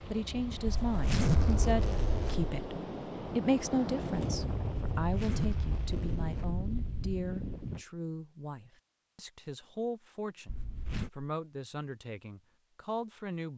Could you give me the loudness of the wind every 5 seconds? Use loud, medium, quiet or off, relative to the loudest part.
loud, loud, off.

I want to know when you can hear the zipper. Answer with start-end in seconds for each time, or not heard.
0.7-2.5, 5.0-7.2, 10.4-11.1.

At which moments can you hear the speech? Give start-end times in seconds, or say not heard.
0.1-13.5.